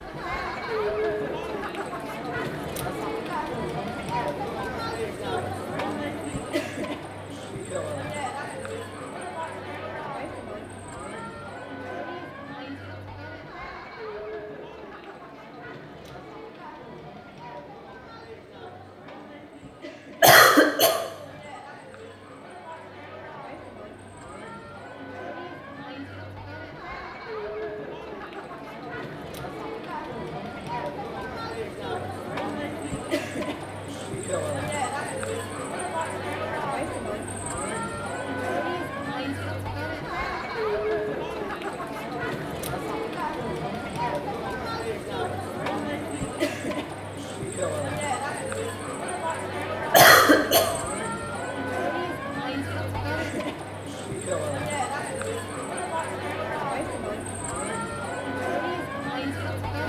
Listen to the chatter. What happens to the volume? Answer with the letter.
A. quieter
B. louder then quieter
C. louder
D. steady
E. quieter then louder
E.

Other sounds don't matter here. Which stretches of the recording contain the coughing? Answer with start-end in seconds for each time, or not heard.
20.2-21.1, 49.9-50.8.